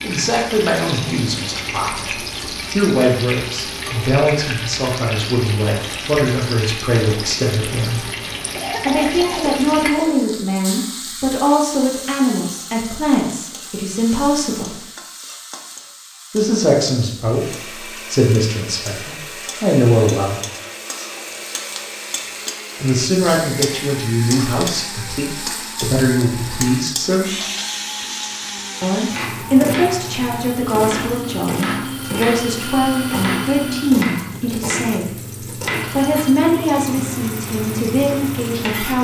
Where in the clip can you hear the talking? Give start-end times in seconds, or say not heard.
0.0-8.1, 8.8-14.8, 16.3-20.4, 22.8-27.4, 28.8-39.0.